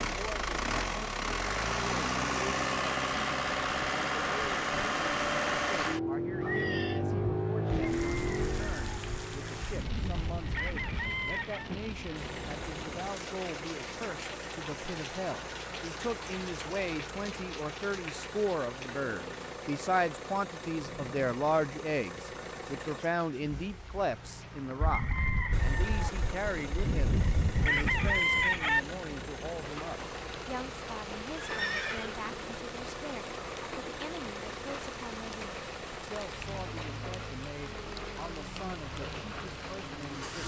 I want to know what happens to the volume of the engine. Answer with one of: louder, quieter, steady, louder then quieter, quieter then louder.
quieter.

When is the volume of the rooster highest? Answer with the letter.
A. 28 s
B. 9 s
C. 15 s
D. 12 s
A.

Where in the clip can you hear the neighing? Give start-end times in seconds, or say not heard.
6.4-7.0, 31.4-32.4.